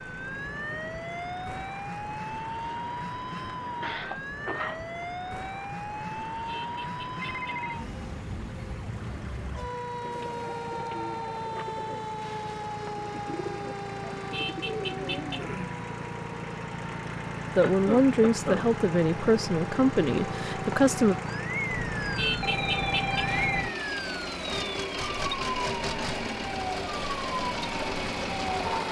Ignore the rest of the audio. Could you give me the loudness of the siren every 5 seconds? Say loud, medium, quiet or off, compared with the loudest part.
loud, loud, loud, medium, loud, loud.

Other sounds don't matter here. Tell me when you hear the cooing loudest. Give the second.
15 s.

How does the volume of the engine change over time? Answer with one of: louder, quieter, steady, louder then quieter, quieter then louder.
louder.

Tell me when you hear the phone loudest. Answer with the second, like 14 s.
23 s.